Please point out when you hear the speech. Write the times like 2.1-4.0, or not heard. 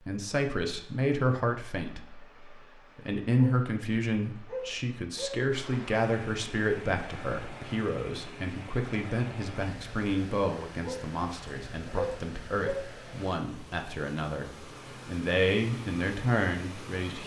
0.1-17.2.